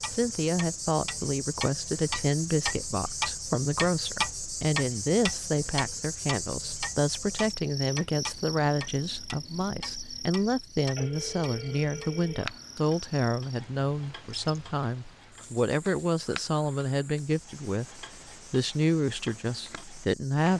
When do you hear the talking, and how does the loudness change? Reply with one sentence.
You can hear the talking from 0.1 to 20.5 s, at a steady volume.